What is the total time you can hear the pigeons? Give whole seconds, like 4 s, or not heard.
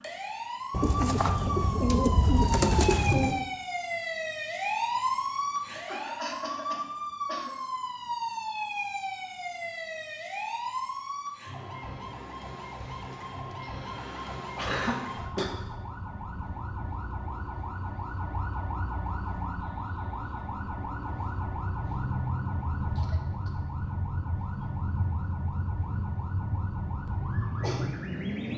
3 s.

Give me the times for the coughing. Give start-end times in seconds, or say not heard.
5.8-7.5, 13.1-15.6, 22.9-23.6.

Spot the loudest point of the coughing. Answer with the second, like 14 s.
15 s.